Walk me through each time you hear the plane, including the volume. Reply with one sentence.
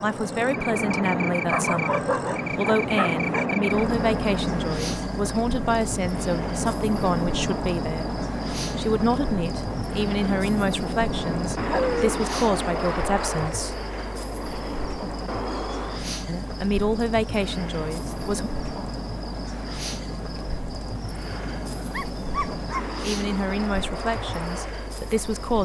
The plane can be heard from 0.0 to 25.6 s, getting quieter.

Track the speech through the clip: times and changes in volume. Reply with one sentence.
The speech can be heard from 0.0 to 13.8 s, at a steady volume; briefly from 16.2 to 18.5 s; and briefly from 23.0 to 25.6 s.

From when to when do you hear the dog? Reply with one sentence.
You can hear the dog from 1.5 to 3.5 s, from 11.7 to 12.2 s and from 21.2 to 22.8 s.